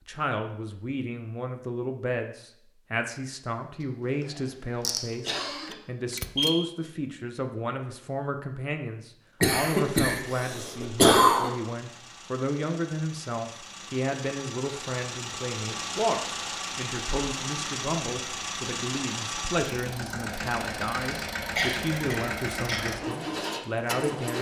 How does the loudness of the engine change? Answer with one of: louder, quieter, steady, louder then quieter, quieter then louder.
louder.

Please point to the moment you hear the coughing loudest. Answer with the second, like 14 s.
11 s.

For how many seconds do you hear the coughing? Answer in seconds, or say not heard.
4 s.